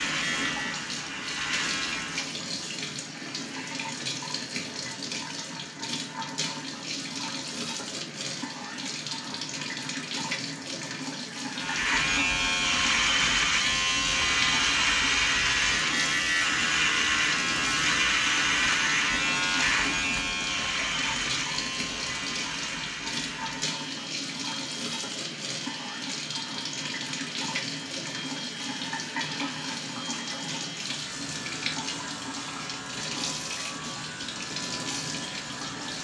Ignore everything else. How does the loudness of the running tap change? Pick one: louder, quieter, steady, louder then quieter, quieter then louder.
steady.